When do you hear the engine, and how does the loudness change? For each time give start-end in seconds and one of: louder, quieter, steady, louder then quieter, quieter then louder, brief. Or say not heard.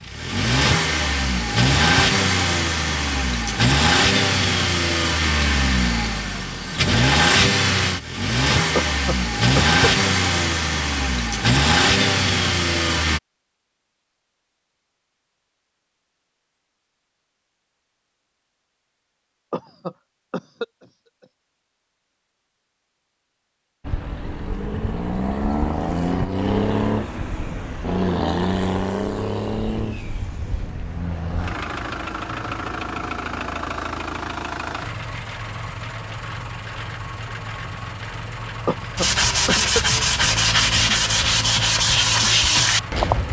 0.0-13.2 steady
23.8-43.2 quieter.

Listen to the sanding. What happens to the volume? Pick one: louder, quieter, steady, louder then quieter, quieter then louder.
steady.